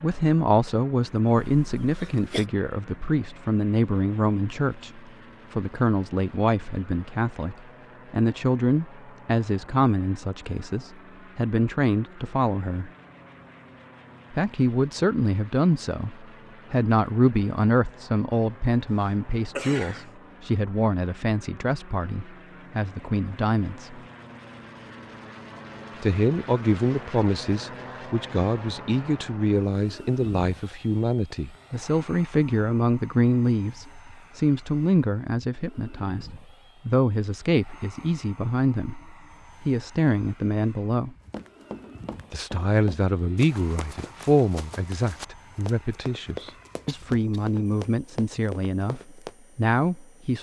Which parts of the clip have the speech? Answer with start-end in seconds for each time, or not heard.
0.0-12.9, 14.3-24.0, 26.0-41.1, 42.3-50.3.